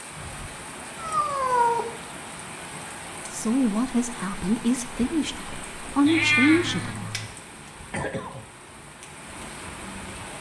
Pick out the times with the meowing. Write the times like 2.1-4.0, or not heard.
0.9-1.9, 6.0-7.3.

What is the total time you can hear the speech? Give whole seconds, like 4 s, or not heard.
4 s.